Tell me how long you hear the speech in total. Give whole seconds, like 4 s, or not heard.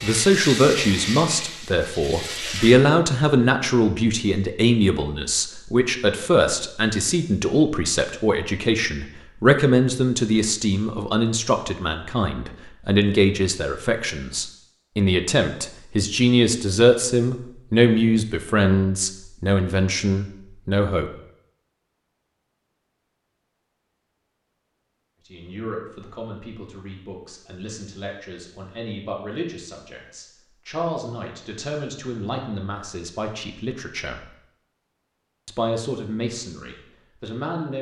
32 s.